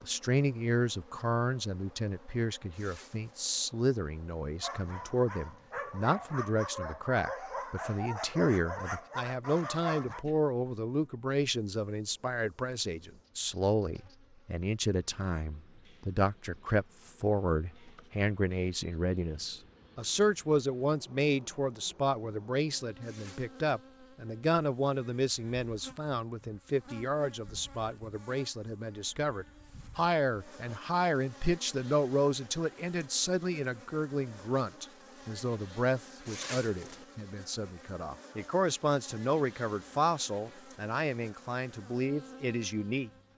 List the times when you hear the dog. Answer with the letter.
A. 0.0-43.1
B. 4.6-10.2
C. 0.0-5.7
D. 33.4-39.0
B.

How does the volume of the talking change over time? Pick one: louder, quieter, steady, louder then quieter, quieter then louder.
steady.